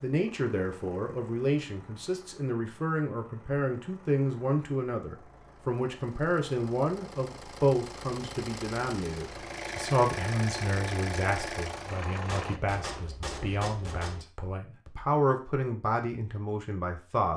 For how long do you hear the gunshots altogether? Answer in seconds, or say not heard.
2 s.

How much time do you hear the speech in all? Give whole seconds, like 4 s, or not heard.
17 s.